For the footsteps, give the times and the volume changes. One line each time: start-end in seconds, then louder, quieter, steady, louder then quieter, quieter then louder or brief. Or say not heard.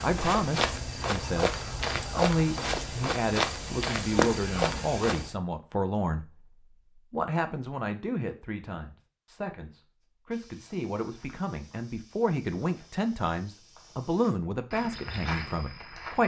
0.0-5.3 steady
10.3-16.2 louder.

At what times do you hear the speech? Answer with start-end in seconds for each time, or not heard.
0.0-16.2.